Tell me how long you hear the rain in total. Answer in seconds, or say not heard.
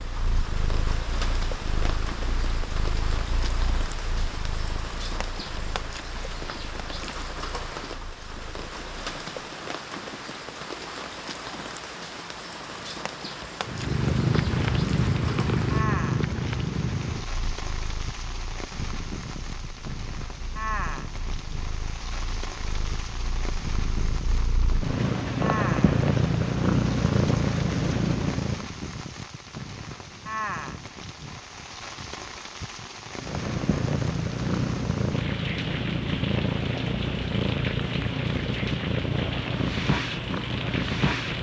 41 s.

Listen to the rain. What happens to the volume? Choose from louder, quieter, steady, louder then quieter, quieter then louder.
steady.